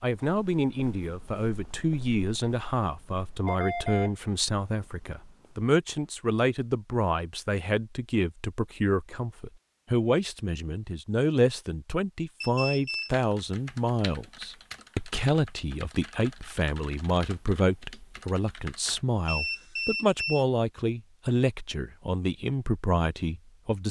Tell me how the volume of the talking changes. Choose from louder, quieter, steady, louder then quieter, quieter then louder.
steady.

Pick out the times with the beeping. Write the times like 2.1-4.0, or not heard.
3.5-4.2, 12.4-13.2, 19.2-20.4.